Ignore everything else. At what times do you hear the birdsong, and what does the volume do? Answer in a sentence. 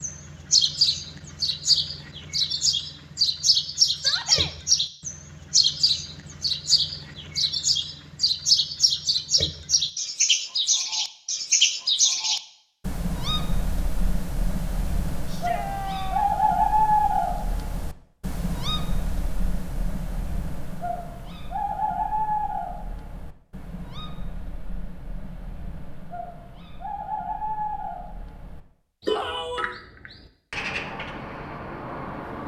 The birdsong can be heard from 0.0 to 32.4 s, getting quieter.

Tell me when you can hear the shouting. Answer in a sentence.
The shouting can be heard from 4.0 to 4.5 s, from 15.2 to 16.3 s and from 29.1 to 29.8 s.